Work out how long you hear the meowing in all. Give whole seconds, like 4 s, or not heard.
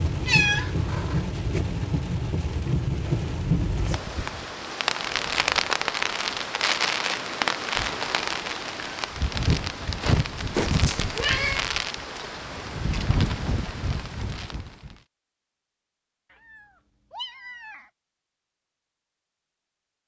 4 s.